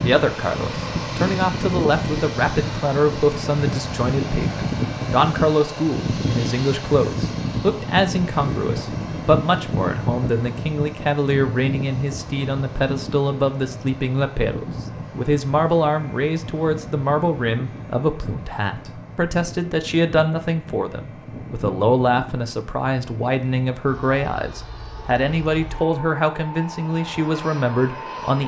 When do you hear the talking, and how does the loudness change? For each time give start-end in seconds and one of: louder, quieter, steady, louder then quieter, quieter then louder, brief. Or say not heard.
0.0-28.4 steady.